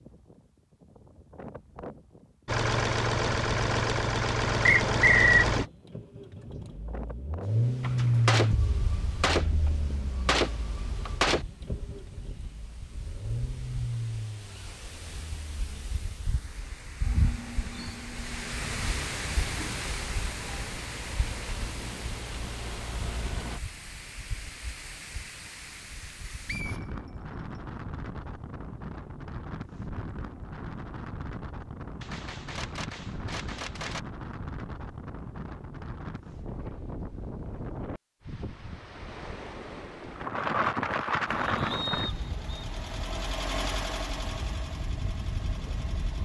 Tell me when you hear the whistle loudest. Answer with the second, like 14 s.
5 s.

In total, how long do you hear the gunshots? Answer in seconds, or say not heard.
6 s.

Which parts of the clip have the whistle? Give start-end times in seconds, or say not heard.
4.7-5.5, 26.4-27.6, 41.7-42.6.